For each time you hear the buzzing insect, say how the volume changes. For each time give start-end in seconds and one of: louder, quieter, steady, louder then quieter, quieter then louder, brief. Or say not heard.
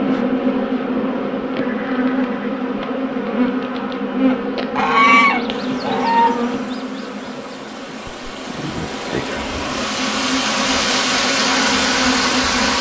0.0-12.7 quieter then louder.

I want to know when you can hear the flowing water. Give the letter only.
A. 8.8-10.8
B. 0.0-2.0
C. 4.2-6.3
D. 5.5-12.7
D.